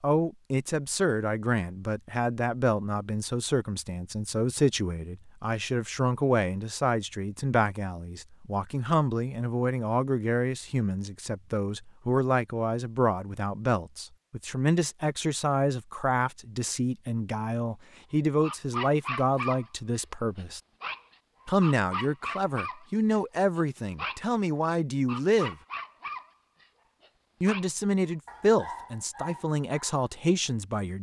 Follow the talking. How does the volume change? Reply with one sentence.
The loudness of the talking stays about the same.